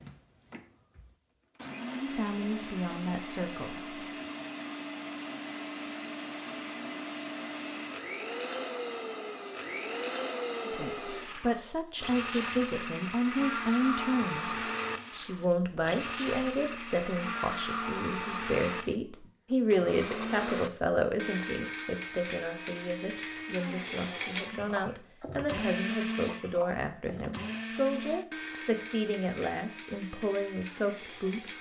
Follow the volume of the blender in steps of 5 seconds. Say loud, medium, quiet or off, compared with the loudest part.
medium, loud, loud, loud, loud, loud, medium.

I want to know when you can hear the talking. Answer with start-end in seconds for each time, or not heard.
1.9-4.0, 10.7-31.5.